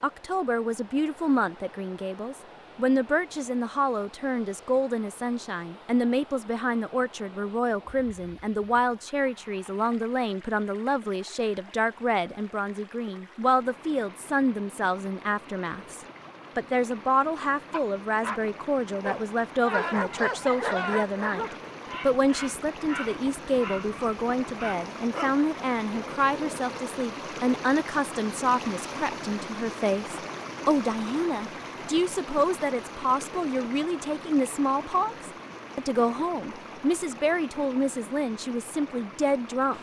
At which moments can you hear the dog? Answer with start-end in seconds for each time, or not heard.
17.7-26.9.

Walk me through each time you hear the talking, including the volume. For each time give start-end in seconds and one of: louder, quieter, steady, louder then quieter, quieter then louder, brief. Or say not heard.
0.0-39.7 steady.